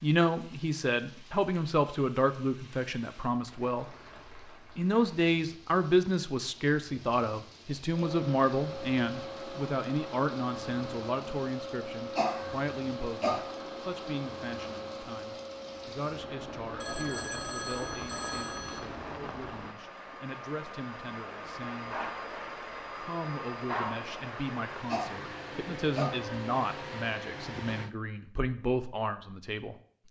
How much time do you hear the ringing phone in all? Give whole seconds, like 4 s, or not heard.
2 s.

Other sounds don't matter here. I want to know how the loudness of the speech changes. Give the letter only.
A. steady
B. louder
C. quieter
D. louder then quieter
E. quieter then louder
E.